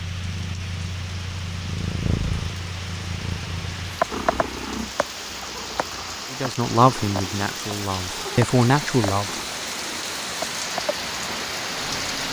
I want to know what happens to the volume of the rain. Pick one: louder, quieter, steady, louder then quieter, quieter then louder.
louder.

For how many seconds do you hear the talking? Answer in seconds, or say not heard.
3 s.